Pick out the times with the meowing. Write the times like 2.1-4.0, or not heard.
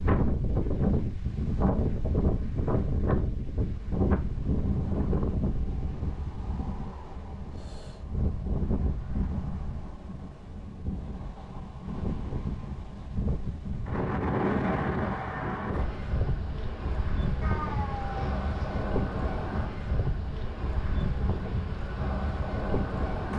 17.4-18.9.